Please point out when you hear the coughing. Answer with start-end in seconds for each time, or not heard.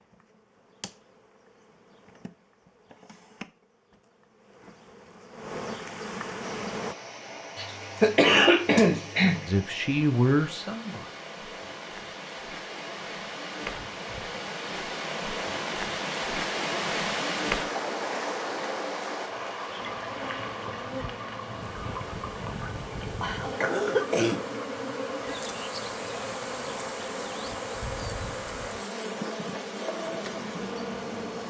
7.5-9.4, 23.2-24.4.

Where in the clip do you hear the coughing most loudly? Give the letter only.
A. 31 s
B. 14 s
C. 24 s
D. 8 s
D.